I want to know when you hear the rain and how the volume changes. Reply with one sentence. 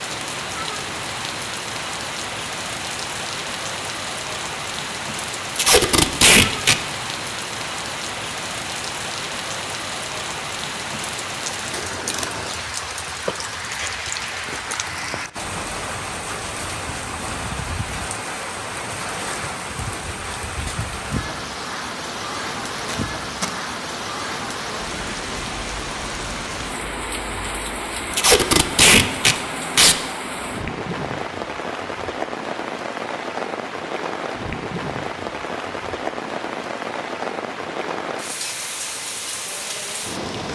You can hear the rain from 0.0 to 40.5 s, at a steady volume.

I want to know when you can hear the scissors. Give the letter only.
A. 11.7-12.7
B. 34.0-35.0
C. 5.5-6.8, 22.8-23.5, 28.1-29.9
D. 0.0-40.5
A.